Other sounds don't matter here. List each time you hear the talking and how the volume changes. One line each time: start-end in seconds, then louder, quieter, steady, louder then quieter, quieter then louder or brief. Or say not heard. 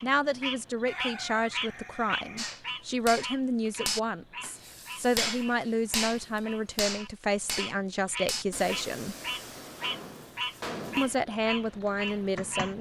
0.0-9.2 steady
10.9-12.7 brief.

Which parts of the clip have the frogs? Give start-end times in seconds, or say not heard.
0.0-12.7.